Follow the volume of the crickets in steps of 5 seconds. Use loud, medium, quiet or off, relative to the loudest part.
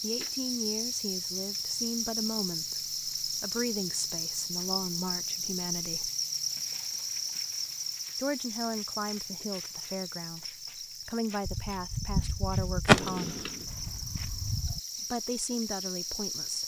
loud, loud, medium, loud.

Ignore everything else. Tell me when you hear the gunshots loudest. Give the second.
13 s.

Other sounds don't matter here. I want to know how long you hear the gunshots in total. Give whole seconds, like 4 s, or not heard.
3 s.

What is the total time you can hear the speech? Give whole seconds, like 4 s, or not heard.
13 s.